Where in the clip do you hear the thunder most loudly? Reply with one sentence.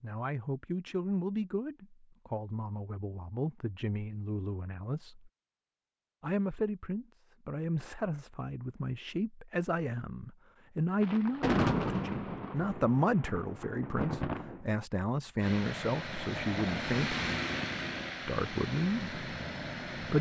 The loudest moment of the thunder is at 12 seconds.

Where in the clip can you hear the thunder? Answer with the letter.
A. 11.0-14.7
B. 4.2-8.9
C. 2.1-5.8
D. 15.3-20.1
A.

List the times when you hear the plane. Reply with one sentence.
You can hear the plane from 15.3 to 20.1 s.